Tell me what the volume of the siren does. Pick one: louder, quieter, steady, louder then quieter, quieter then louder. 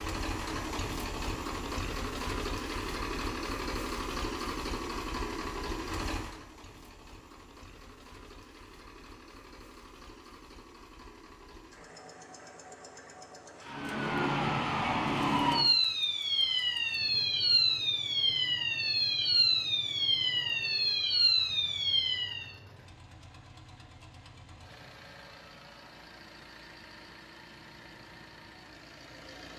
steady.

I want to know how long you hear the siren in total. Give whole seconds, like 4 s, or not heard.
9 s.